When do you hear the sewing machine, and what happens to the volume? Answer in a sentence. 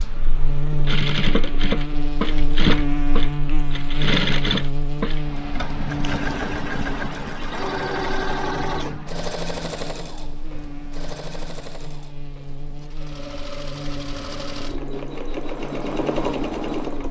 The sewing machine can be heard from 0.0 to 17.0 s, getting quieter then louder.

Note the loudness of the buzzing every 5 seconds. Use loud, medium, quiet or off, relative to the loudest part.
loud, medium, medium, medium.